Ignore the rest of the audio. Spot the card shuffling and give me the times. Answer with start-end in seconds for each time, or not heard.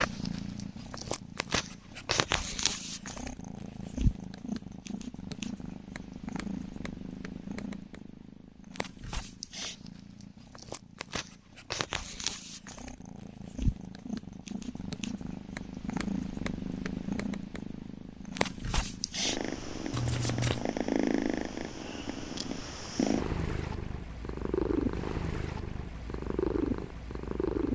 19.9-20.6.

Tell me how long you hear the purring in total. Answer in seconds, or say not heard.
28 s.